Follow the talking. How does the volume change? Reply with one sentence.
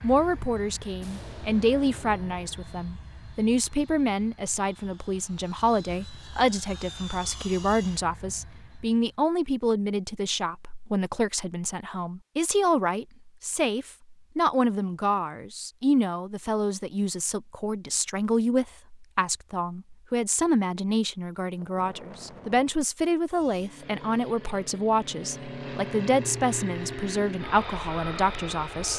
The loudness of the talking stays about the same.